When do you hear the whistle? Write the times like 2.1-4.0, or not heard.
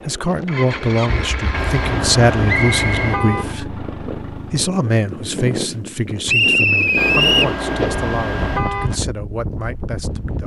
2.5-3.0, 6.2-7.5.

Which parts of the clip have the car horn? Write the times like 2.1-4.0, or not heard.
1.5-3.5, 7.0-9.0.